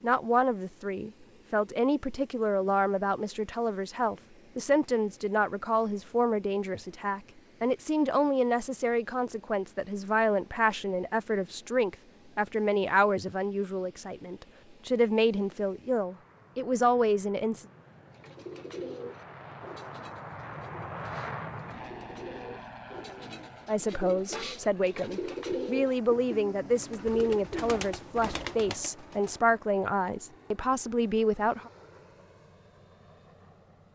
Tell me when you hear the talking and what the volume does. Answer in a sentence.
The talking can be heard from 0.0 to 17.6 s, at a steady volume; and from 23.6 to 31.7 s, at a steady volume.